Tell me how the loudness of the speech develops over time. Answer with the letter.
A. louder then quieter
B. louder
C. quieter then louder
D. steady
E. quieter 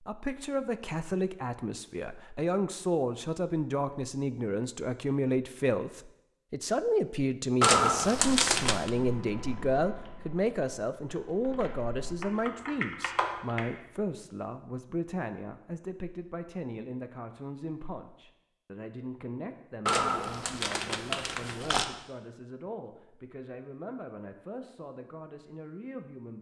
E.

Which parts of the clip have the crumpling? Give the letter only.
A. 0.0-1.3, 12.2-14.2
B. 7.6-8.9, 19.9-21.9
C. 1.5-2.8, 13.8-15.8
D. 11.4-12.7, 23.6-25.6
B.